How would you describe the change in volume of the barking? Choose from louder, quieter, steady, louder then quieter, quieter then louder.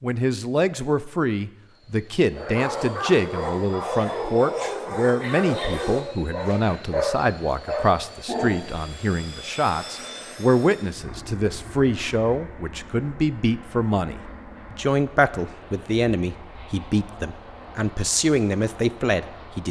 steady.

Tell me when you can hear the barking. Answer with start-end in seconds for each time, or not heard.
2.3-8.8.